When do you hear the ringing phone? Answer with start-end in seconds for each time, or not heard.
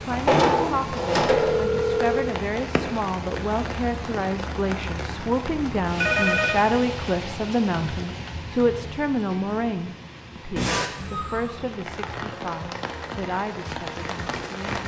0.1-2.3, 6.0-6.6, 10.6-11.5.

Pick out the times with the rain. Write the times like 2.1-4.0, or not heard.
0.0-14.8.